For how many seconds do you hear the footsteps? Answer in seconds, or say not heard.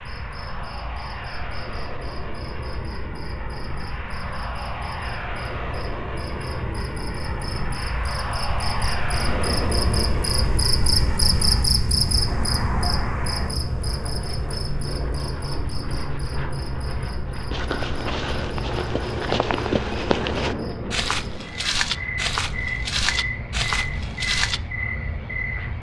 7 s.